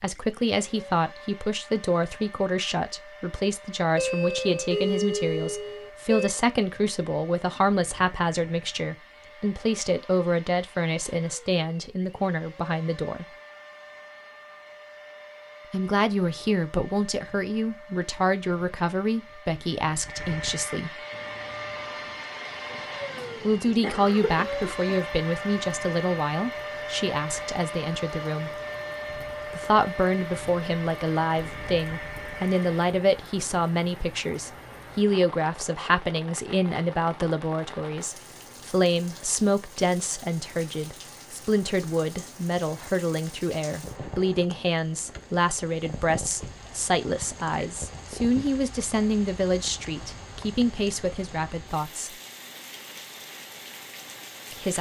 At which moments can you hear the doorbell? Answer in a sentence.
You can hear the doorbell from 4.0 to 6.3 s.